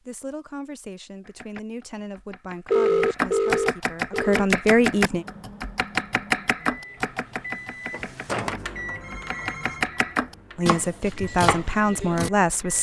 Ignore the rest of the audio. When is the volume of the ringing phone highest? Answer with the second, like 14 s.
3 s.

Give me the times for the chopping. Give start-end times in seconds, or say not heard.
1.2-12.3.